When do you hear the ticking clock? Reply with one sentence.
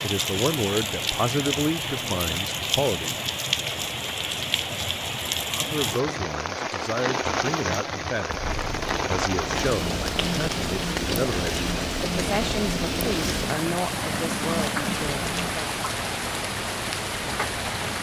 You can't hear the ticking clock here.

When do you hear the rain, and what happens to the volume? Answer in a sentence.
The rain can be heard from 0.0 to 17.9 s, at a steady volume.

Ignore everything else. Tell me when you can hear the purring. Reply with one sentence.
You can hear the purring from 8.2 to 15.6 s.